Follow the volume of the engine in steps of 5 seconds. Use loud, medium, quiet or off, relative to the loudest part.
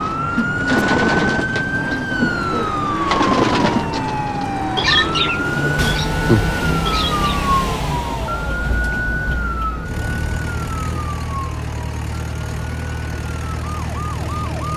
off, loud, loud.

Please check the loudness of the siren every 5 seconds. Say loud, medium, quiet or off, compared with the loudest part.
loud, loud, medium.